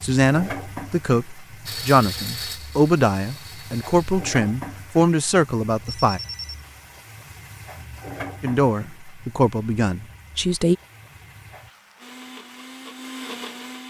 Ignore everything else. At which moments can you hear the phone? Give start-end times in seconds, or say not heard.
5.8-6.6.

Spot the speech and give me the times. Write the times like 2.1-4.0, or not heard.
0.0-6.2, 8.4-10.8.